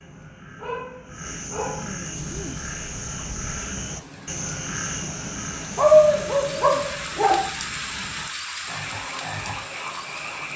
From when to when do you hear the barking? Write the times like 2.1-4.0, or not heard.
0.6-1.9, 5.8-7.5.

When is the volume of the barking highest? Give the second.
6 s.